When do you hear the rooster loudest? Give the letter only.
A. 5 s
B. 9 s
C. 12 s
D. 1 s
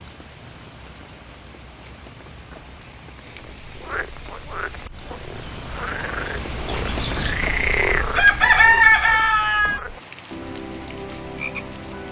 B.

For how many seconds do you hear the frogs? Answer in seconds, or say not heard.
9 s.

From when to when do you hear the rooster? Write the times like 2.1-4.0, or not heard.
6.7-9.8.